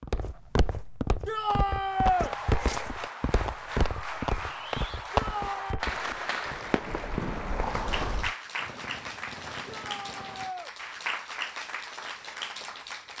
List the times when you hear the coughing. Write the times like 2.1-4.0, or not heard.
not heard.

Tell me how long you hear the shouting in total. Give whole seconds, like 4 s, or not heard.
3 s.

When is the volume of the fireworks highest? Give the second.
5 s.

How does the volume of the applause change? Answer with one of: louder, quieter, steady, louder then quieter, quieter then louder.
steady.